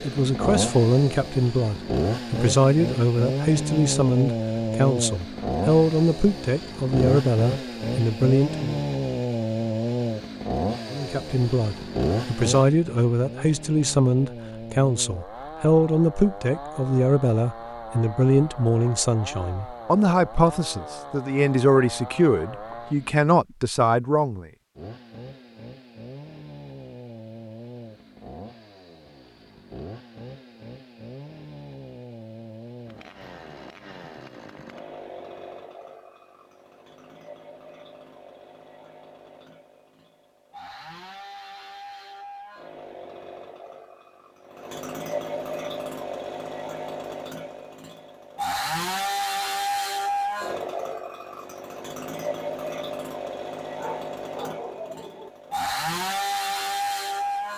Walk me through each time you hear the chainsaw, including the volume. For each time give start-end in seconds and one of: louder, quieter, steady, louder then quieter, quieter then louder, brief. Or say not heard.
0.0-23.2 quieter
24.8-57.5 louder.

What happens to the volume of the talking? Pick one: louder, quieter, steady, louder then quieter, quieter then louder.
steady.